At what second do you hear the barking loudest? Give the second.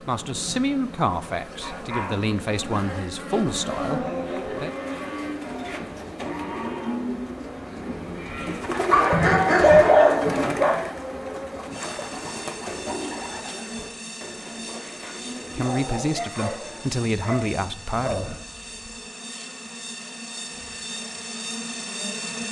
10 s.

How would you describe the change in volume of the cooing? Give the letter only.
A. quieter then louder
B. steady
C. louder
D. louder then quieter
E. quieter
D.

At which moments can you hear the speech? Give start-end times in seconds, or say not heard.
0.0-4.7, 15.5-18.4.